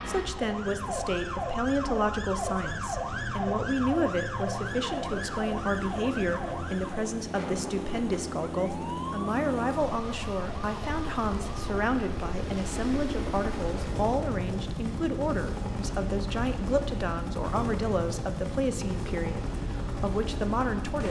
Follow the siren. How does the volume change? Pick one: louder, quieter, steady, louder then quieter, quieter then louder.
quieter.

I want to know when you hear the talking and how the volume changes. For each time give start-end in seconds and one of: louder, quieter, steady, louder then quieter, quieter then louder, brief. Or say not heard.
0.1-21.0 steady.